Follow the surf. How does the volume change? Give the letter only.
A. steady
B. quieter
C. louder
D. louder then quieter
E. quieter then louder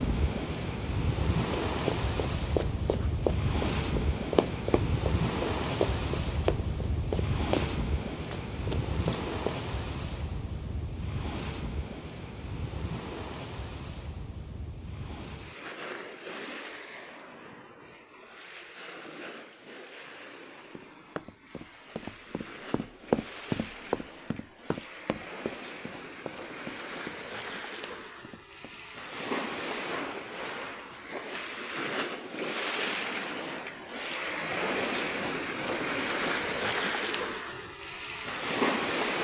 E.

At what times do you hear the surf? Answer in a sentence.
The surf can be heard from 0.0 to 39.2 s.